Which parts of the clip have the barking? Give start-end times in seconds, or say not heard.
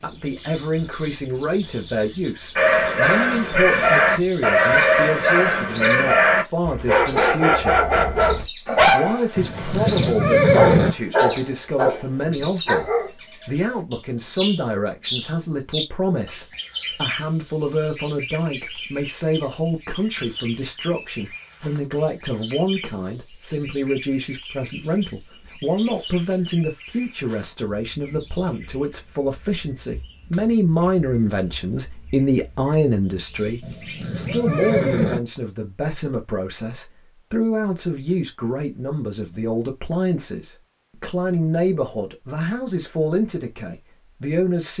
2.5-13.1.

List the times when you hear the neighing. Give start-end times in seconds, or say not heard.
9.3-10.9, 33.6-35.2.